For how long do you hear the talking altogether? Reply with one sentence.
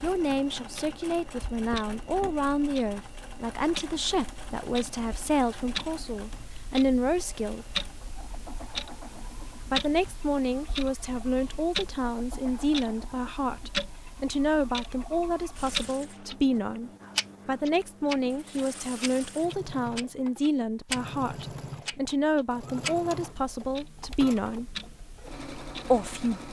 The talking can be heard for 23 seconds in total.